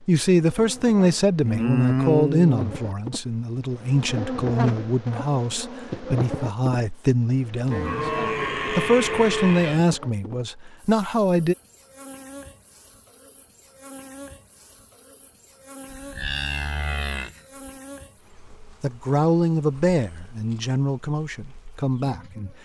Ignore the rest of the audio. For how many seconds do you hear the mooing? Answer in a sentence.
The mooing can be heard for 5 seconds in total.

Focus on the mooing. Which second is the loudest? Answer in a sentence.
The loudest moment of the mooing is at 2 seconds.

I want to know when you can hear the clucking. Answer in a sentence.
The clucking can't be heard in this clip.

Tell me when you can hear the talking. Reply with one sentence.
You can hear the talking from 0.1 to 8.1 s, from 8.7 to 11.6 s and from 18.8 to 22.5 s.